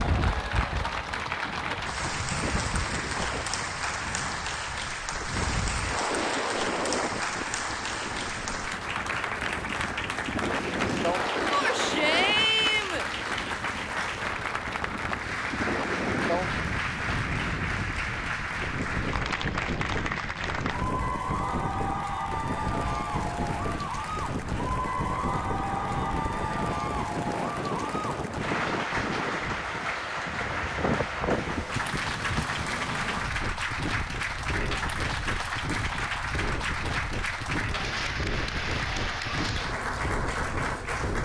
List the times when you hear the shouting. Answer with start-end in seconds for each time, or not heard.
11.5-13.1.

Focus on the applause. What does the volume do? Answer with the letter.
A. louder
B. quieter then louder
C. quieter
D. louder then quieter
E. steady
E.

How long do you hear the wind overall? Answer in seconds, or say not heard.
41 s.